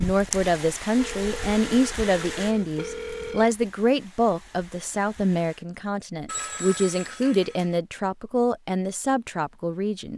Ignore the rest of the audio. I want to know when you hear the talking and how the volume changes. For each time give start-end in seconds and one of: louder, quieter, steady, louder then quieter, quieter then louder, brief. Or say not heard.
0.0-10.1 steady.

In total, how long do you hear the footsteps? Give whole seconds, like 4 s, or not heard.
not heard.